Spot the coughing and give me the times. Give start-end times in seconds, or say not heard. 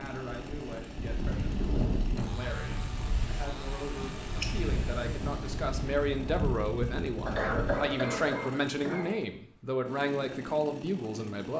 2.1-3.0, 7.2-9.2.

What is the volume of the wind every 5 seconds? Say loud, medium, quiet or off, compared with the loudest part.
loud, loud, off.